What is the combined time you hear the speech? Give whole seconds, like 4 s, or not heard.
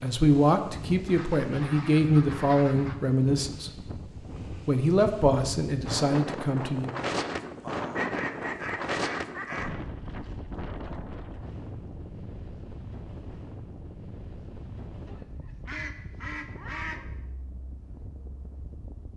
6 s.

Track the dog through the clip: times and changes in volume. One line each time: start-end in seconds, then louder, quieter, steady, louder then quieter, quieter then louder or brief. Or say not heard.
not heard.